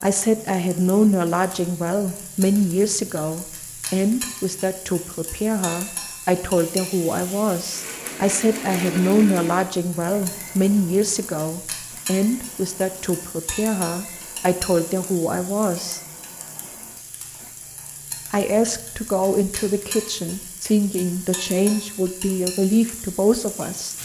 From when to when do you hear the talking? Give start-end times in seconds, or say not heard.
0.0-16.0, 18.3-23.9.